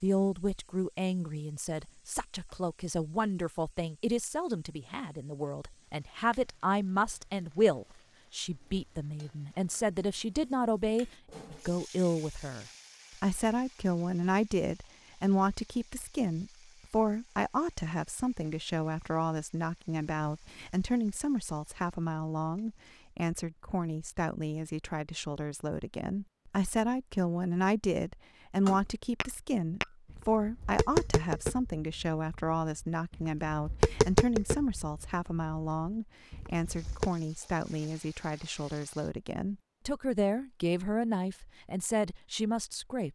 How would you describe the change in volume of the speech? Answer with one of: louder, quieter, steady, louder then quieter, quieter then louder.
steady.